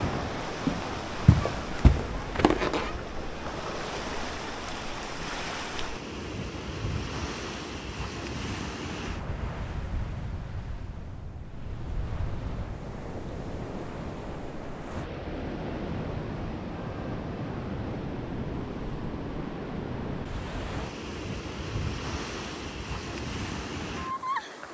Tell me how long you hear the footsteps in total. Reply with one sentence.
The footsteps can be heard for 3 seconds in total.